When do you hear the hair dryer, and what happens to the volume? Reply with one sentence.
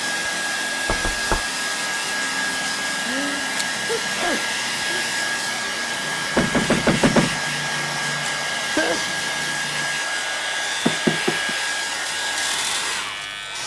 You can hear the hair dryer from 0.0 to 13.6 s, at a steady volume.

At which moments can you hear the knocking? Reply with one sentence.
The knocking can be heard from 0.8 to 1.4 s, from 6.3 to 7.4 s and from 10.8 to 11.6 s.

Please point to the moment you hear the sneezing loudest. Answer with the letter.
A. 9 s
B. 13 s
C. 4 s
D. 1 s
A.